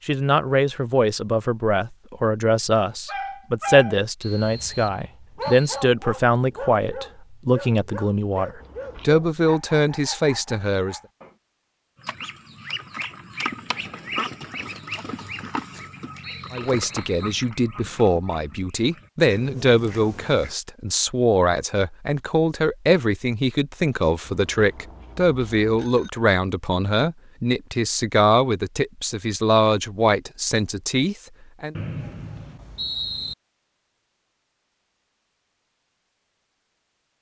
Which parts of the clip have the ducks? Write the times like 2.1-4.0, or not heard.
12.0-20.6.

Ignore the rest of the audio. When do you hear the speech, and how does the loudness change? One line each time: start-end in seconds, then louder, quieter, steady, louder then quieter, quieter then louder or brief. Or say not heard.
0.1-11.0 steady
16.5-31.8 steady.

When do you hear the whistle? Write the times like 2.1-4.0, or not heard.
4.2-5.8, 16.2-17.5, 31.8-33.4.